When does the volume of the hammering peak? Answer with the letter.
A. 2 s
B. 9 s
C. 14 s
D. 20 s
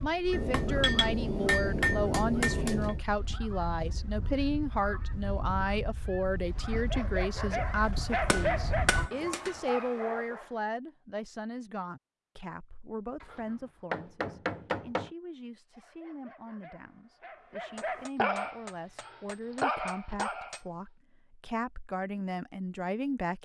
A.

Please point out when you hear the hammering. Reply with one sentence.
You can hear the hammering from 0.3 to 3.0 s, from 7.8 to 9.6 s, from 13.2 to 15.1 s and from 17.8 to 20.6 s.